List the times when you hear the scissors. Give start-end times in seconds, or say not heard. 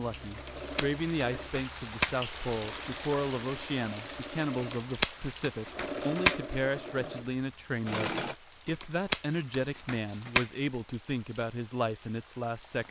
0.5-2.1, 4.7-6.5, 8.8-10.7.